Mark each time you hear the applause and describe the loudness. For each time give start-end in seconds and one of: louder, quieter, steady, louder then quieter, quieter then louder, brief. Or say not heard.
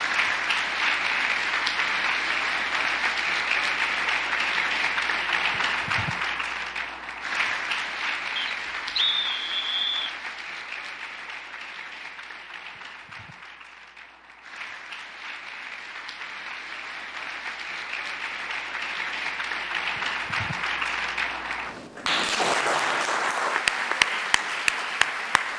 0.0-25.5 quieter then louder.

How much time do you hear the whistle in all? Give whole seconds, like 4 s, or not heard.
2 s.